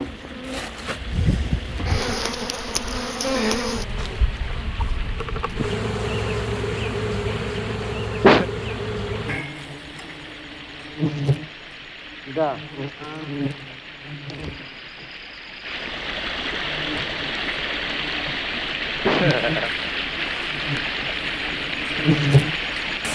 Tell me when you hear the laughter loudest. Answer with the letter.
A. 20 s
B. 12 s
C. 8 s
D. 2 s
C.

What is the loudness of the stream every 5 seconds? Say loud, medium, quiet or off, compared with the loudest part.
quiet, quiet, quiet, loud, loud.